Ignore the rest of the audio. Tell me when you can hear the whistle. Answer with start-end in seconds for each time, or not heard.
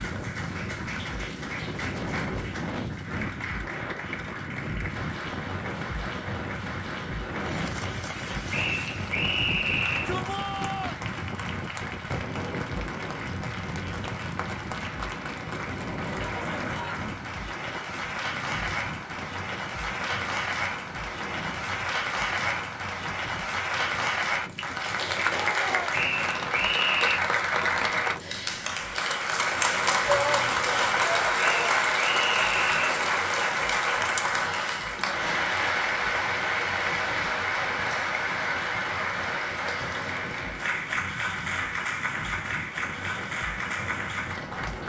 8.5-10.2, 25.9-27.2, 31.4-33.0.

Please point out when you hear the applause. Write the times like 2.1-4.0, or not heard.
0.0-44.8.